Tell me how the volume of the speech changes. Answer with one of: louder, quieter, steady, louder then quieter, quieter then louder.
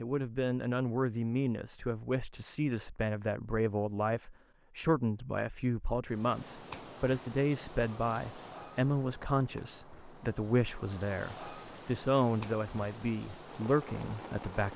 steady.